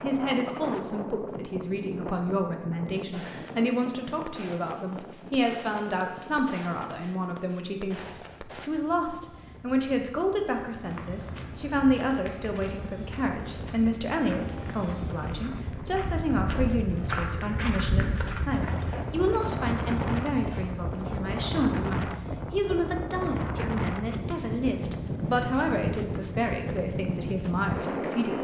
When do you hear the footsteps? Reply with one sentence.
The footsteps can be heard from 10.8 to 21.4 s.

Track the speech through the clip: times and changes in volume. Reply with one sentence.
The speech can be heard from 0.0 to 28.3 s, at a steady volume.